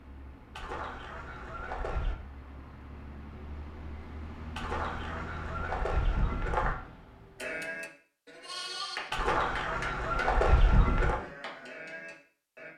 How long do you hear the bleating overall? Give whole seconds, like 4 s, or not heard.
5 s.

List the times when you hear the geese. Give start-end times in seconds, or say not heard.
0.6-2.1, 4.5-6.8, 9.1-11.2.